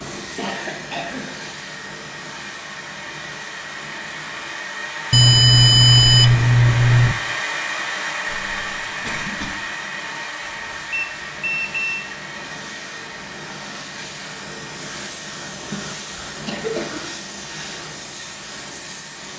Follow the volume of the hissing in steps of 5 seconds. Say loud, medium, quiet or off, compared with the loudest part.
loud, medium, loud, loud.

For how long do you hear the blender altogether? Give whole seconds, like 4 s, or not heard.
19 s.